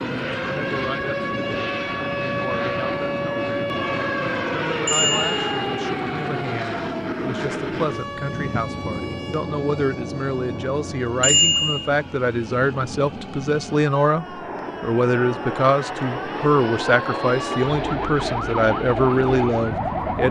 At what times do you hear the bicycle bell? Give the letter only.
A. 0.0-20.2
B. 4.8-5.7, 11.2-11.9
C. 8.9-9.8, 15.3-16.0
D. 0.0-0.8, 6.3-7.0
B.